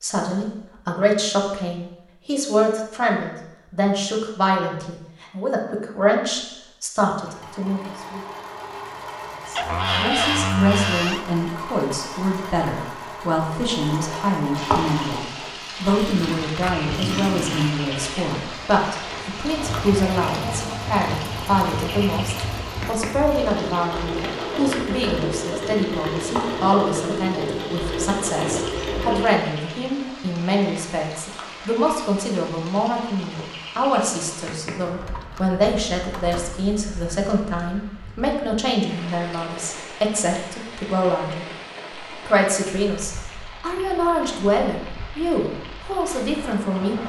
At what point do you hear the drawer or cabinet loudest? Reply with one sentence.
The loudest moment of the drawer or cabinet is at 10 seconds.